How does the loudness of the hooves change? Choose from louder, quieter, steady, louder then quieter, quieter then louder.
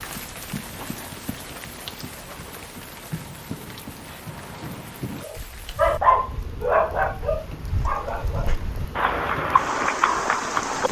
louder.